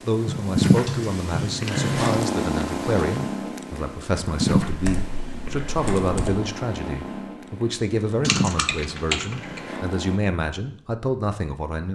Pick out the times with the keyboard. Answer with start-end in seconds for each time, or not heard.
0.2-2.2, 4.7-6.5, 8.2-9.8.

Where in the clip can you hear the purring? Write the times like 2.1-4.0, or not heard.
0.0-10.2.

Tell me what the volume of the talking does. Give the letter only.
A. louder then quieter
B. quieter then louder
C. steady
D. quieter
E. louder
C.